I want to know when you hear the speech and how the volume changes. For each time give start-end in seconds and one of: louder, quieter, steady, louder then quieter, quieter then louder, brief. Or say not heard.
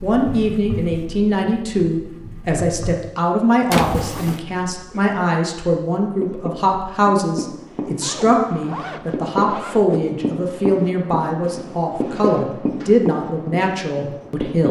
0.0-14.6 steady.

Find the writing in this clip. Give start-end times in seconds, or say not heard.
0.0-3.0, 6.0-14.6.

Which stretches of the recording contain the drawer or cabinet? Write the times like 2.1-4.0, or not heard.
3.7-4.4, 11.4-13.1.